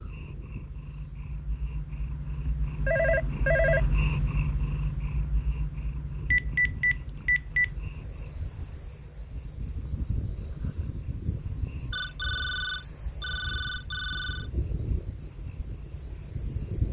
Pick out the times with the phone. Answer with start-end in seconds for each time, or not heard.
2.9-3.8, 6.3-7.7, 11.9-14.4.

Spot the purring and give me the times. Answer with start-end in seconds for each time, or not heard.
0.0-16.8.